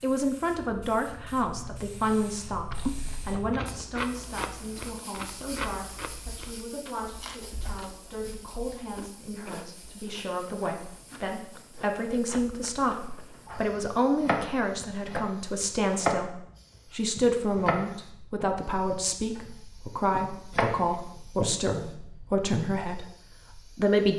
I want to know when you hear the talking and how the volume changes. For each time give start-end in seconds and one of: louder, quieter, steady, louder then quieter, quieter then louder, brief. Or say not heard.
0.0-24.1 quieter then louder.